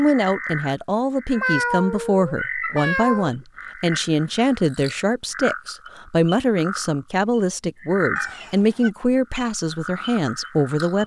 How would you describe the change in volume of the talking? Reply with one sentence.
The loudness of the talking stays about the same.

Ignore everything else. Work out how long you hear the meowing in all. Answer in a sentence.
You can hear the meowing for 3 seconds altogether.